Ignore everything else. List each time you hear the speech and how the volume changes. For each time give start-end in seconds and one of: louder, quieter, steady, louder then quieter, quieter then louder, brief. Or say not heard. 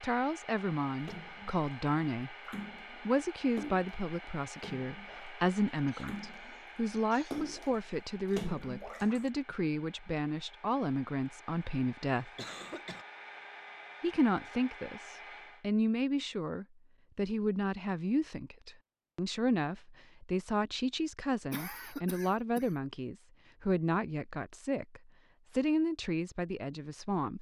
0.0-2.4 brief
3.0-12.3 steady
14.0-27.3 steady.